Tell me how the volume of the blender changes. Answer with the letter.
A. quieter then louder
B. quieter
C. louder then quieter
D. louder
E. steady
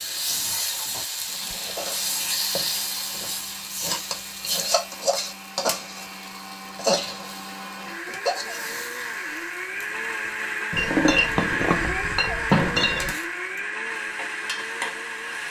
D.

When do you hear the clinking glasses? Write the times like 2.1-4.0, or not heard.
10.8-13.2.